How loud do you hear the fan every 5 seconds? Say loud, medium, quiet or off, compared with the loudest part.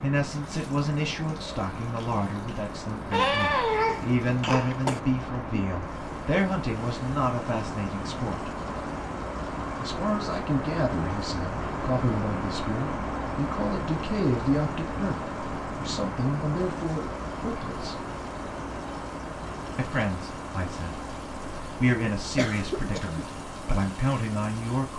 medium, loud, loud, loud, medium.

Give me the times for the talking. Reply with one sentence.
The talking can be heard from 0.0 to 8.5 s, from 9.8 to 17.9 s, from 19.8 to 21.0 s and from 21.8 to 24.9 s.